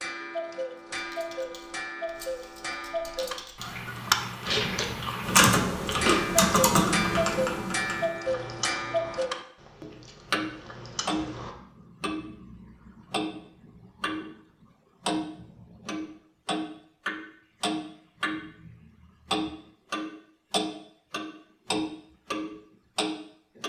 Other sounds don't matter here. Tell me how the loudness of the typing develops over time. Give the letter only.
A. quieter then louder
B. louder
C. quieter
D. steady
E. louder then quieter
E.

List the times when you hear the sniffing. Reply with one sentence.
The sniffing can be heard from 5.5 to 6.2 s.